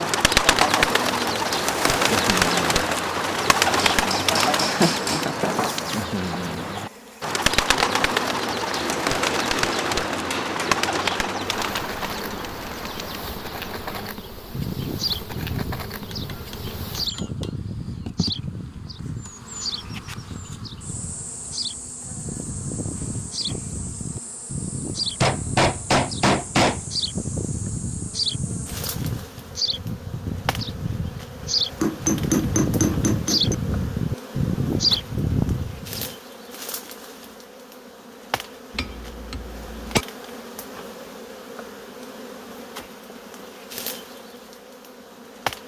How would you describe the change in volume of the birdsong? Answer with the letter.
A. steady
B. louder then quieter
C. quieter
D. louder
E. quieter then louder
E.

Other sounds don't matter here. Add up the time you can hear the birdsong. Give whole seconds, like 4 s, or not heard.
36 s.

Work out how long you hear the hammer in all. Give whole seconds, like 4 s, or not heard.
10 s.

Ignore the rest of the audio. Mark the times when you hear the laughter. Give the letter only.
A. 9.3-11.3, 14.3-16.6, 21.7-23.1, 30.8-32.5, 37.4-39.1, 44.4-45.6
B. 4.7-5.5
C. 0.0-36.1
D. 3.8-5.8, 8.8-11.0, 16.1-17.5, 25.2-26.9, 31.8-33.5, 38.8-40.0
B.